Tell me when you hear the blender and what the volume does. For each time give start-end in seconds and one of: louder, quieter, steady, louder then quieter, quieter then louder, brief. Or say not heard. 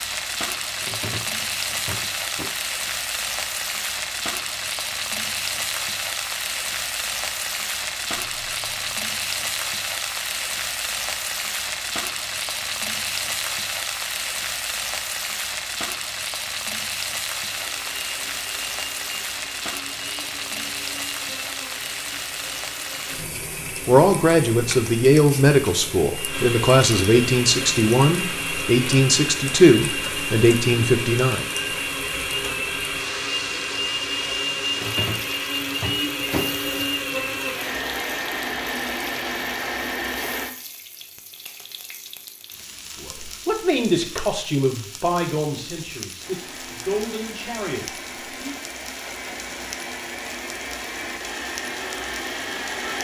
17.4-40.5 louder
46.1-52.9 louder.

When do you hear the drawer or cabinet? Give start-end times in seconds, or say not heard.
0.8-2.5, 34.8-37.5.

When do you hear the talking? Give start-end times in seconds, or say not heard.
23.9-31.4, 43.0-48.5.